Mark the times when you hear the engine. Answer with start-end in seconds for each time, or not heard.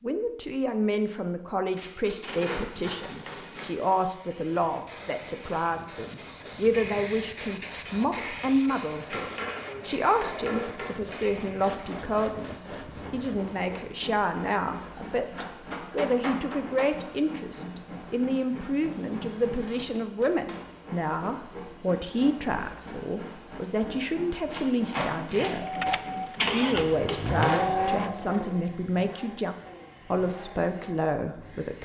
25.6-31.6.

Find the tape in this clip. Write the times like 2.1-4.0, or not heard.
1.8-3.8, 24.5-25.9.